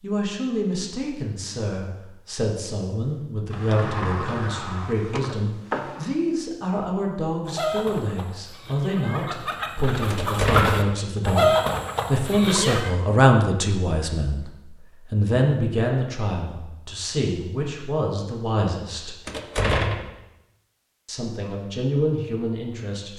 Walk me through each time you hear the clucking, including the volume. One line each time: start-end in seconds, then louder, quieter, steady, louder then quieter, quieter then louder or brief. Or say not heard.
7.5-12.9 louder then quieter.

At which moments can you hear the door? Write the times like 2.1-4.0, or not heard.
3.5-6.1, 10.1-10.9, 19.2-20.1.